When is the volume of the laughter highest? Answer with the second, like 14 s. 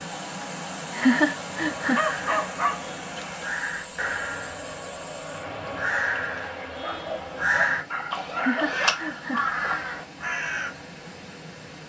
1 s.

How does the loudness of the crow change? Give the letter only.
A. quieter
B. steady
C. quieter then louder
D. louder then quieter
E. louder
E.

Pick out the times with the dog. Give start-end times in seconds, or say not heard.
1.9-3.5, 6.7-8.8.